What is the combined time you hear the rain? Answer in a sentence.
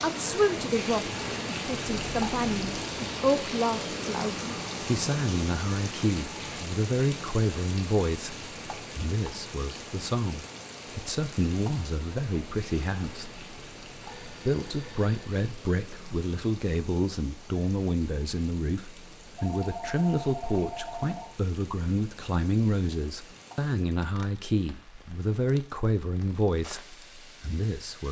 The rain can be heard for 28 seconds in total.